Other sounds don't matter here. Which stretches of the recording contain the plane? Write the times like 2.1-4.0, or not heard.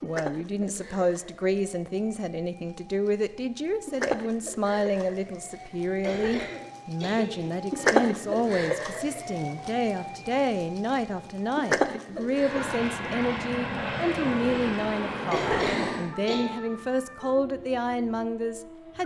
12.3-16.1.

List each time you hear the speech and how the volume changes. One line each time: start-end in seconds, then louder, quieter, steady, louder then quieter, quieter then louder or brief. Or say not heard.
0.0-19.0 steady.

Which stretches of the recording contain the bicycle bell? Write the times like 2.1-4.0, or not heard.
not heard.